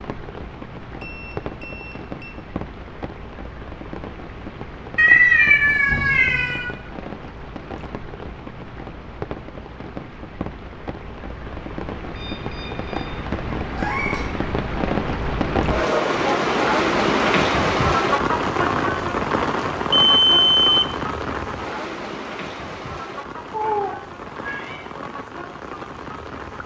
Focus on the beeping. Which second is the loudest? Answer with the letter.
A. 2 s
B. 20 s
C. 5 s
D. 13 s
B.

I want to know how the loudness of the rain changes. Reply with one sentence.
The volume of the rain goes up, then down.